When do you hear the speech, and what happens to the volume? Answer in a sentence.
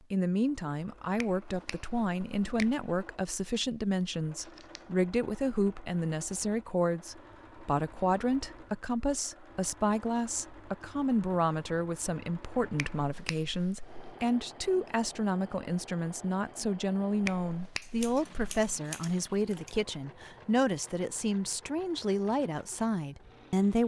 The speech can be heard from 0.1 to 23.8 s, at a steady volume.